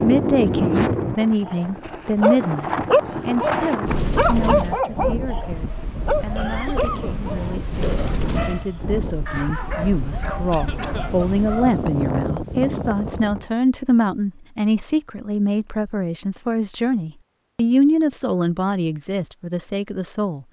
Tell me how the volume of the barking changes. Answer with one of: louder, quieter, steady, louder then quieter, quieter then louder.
quieter.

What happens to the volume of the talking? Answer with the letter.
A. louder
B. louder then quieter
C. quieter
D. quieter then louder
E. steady
D.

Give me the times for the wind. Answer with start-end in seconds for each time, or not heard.
0.0-13.4.